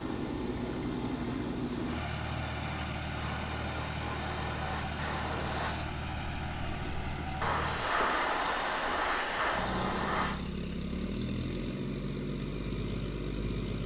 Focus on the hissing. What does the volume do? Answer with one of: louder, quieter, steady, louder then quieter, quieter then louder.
louder.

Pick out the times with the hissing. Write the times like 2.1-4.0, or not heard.
0.0-10.4.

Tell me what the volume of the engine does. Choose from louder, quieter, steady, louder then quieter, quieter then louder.
steady.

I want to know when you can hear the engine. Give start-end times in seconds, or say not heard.
0.0-13.8.